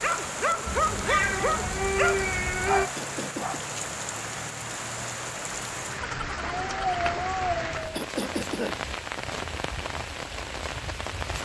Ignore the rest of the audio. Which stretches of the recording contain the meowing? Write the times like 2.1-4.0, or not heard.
0.7-2.9, 6.0-8.0.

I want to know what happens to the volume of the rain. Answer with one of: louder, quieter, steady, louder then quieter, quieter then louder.
steady.